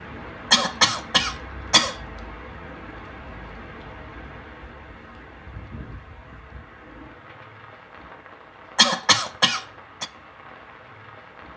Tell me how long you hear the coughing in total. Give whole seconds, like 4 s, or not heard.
3 s.